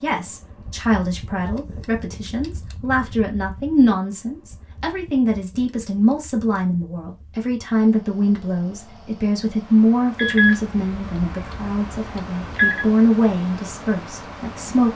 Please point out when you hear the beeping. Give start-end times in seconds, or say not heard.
10.2-12.8.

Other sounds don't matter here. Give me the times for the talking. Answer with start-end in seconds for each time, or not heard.
0.0-14.9.